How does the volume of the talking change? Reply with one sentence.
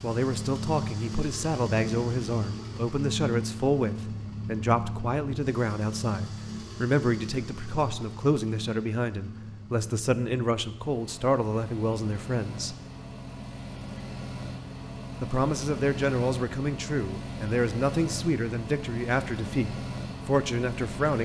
The loudness of the talking stays about the same.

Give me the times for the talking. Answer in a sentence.
The talking can be heard from 0.0 to 12.8 s and from 15.2 to 21.2 s.